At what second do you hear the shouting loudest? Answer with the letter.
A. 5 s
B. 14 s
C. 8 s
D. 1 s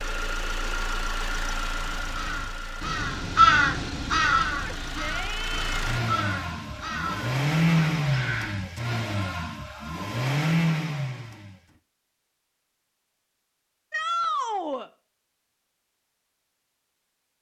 B.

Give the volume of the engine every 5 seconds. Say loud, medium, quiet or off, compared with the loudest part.
medium, loud, loud, off.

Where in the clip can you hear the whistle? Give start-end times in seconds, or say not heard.
not heard.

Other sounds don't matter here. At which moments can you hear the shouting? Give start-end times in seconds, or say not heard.
4.5-6.0, 13.9-14.9.